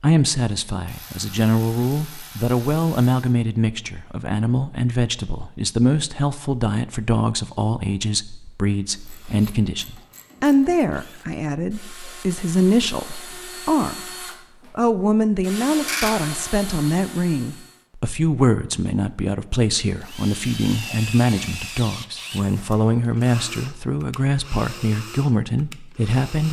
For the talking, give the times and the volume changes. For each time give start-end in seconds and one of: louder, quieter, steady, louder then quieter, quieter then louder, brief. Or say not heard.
0.0-26.4 steady.